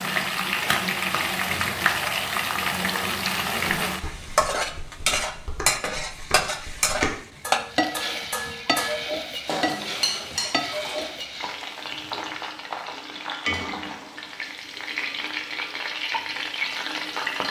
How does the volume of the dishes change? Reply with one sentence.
The loudness of the dishes goes up.